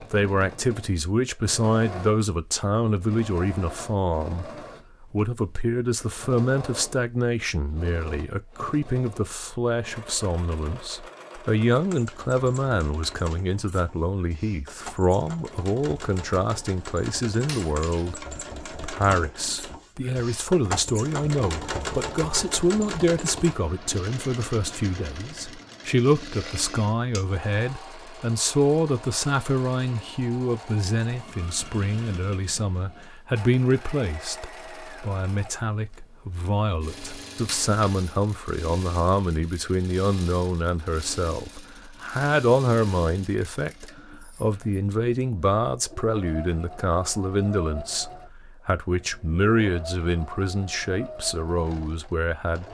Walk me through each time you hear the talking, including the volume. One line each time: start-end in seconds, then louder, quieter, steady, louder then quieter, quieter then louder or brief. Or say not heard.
0.0-52.6 steady.